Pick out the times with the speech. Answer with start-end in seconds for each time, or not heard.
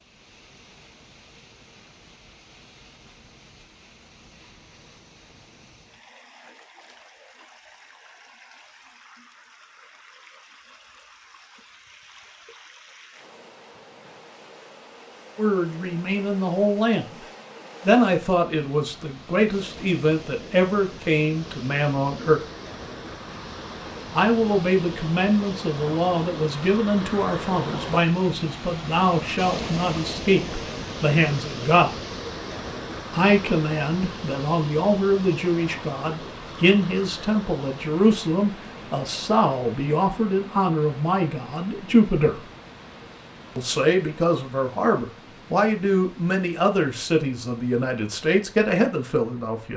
15.3-17.1, 17.9-22.4, 24.1-31.9, 33.1-42.5, 43.5-49.7.